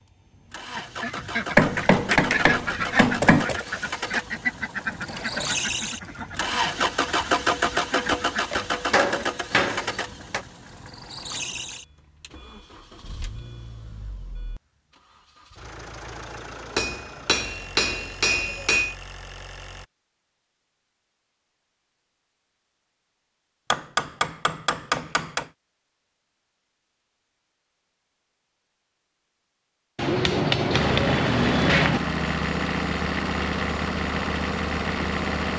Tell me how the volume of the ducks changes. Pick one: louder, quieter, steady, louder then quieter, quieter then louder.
quieter then louder.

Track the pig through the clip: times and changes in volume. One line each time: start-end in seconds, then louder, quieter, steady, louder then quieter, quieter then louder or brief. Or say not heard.
not heard.